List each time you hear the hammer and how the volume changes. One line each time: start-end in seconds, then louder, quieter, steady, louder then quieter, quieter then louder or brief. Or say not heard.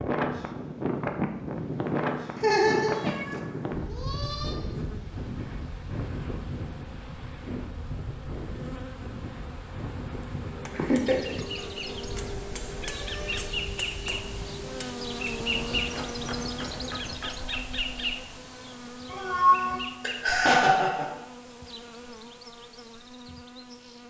10.4-17.5 steady.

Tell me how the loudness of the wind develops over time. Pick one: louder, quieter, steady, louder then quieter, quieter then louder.
quieter.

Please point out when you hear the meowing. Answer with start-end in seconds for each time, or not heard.
2.9-4.5, 11.6-13.6, 19.1-19.9.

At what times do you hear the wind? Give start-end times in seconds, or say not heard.
0.0-18.2.